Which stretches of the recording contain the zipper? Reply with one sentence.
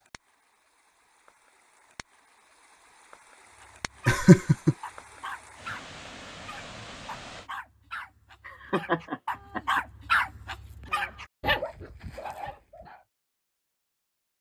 The zipper can't be heard in this clip.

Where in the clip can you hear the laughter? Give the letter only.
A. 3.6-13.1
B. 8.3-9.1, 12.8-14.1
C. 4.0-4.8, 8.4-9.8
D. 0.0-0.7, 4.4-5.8
C.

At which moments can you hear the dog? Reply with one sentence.
The dog can be heard from 3.6 to 13.1 s.